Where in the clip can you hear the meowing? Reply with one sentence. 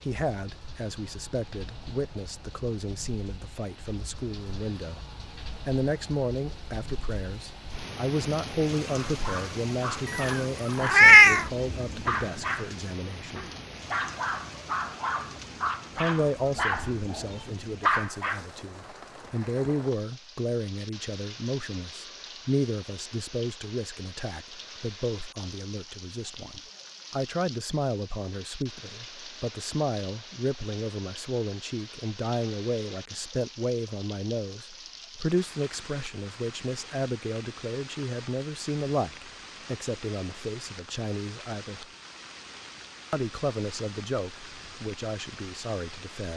You can hear the meowing from 10.1 to 11.4 s.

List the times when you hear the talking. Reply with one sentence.
You can hear the talking from 0.0 to 13.4 s, from 15.9 to 41.9 s and from 43.1 to 46.3 s.